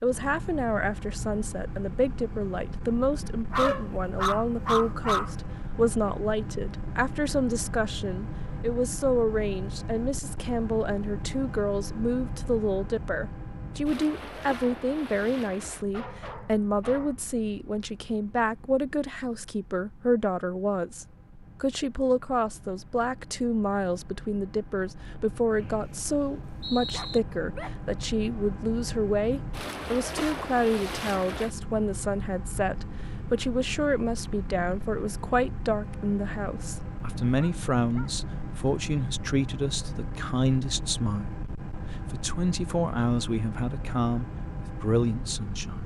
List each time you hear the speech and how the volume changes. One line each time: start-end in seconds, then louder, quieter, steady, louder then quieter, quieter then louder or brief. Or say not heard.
0.0-45.8 steady.